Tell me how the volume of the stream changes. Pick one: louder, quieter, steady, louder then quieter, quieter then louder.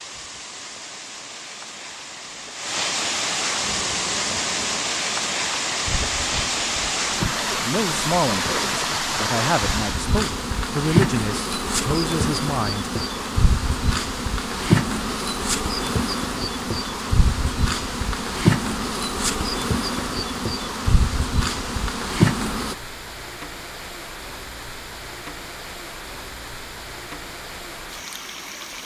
quieter.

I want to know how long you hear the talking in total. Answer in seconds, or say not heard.
5 s.